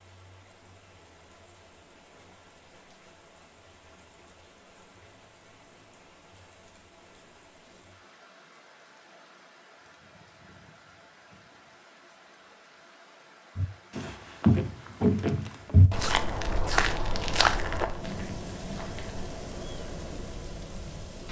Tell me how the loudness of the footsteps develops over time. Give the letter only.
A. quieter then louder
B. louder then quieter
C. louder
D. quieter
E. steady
D.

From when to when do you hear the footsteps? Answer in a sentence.
The footsteps can be heard from 13.6 to 19.2 s.